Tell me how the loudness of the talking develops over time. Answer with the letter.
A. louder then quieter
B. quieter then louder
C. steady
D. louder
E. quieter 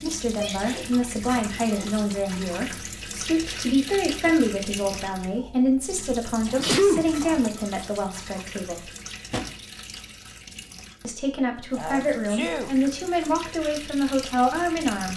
C.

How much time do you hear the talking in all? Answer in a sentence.
The talking can be heard for 13 seconds in total.